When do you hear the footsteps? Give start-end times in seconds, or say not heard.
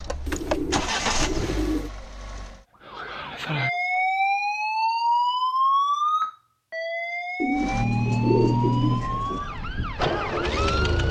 not heard.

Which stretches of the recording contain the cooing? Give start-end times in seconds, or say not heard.
0.2-1.9, 7.4-9.4.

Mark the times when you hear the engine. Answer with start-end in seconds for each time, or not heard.
0.0-2.6, 7.5-11.0.